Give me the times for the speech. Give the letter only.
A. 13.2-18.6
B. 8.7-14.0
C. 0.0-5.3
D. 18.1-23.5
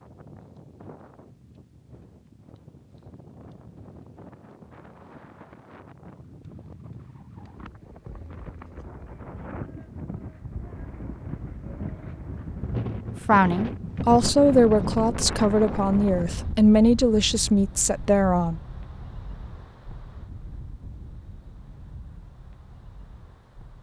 A.